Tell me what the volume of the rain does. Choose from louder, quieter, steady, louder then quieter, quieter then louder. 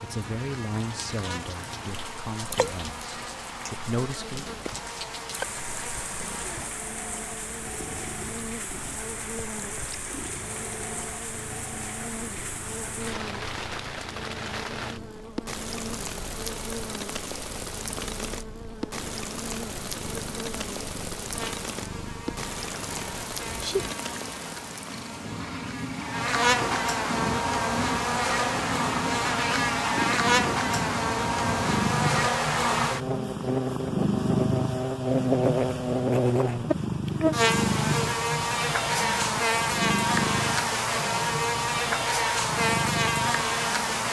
steady.